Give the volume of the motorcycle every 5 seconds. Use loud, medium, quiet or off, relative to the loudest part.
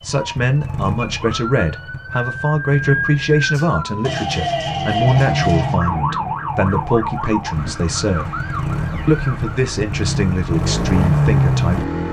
quiet, medium, loud.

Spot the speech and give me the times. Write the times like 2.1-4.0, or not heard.
0.0-8.3, 9.1-11.9.